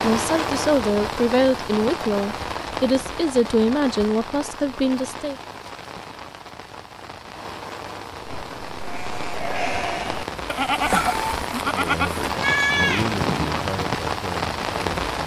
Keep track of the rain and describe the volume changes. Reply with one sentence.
The volume of the rain goes down, then up.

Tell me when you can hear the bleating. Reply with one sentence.
The bleating can be heard from 8.2 to 13.9 s.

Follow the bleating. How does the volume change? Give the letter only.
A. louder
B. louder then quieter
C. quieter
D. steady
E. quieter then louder
A.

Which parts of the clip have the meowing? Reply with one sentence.
The meowing can be heard from 10.8 to 11.4 s.